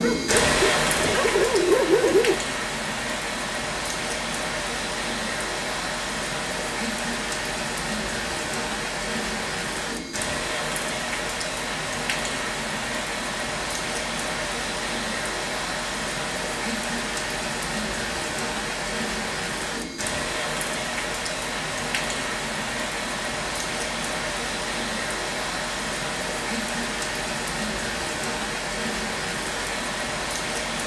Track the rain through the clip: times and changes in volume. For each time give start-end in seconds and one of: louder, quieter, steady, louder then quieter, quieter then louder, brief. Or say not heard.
0.0-30.8 steady.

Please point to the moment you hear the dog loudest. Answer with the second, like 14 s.
2 s.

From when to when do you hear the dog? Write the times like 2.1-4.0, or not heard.
0.0-2.4.